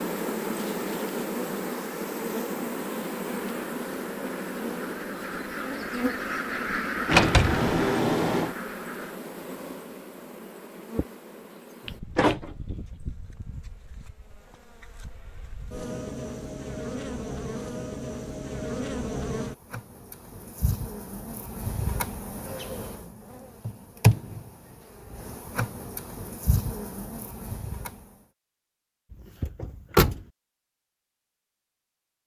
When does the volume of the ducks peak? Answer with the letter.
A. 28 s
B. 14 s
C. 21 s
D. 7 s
D.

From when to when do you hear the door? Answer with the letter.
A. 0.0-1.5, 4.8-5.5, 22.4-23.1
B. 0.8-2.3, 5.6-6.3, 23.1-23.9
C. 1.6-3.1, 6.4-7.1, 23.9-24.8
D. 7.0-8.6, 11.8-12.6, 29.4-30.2
D.